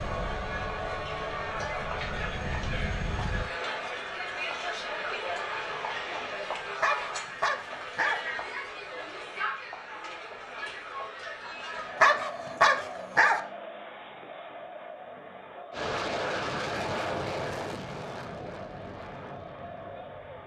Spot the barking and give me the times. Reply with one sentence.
You can hear the barking from 6.8 to 8.2 s and from 12.0 to 13.4 s.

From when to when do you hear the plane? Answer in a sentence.
The plane can be heard from 0.0 to 3.5 s and from 15.7 to 20.4 s.